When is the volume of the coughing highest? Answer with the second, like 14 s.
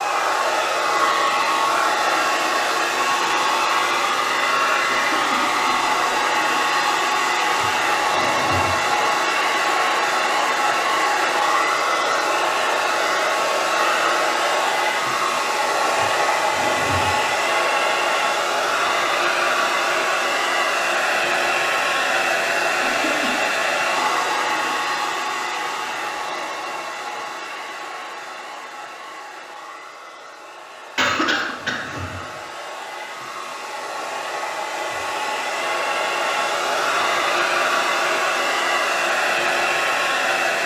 31 s.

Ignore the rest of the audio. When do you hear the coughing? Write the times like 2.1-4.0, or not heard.
4.9-6.2, 22.8-23.4, 30.9-32.0.